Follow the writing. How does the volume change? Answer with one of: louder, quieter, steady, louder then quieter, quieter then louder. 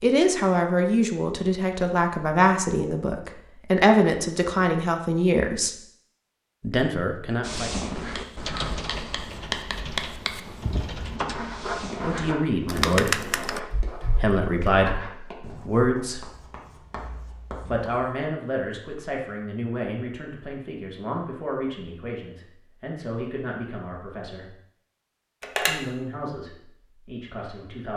quieter.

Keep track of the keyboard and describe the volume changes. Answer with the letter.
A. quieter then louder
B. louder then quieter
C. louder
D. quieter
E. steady
A.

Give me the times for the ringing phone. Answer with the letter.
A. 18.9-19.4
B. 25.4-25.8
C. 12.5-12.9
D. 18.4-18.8
B.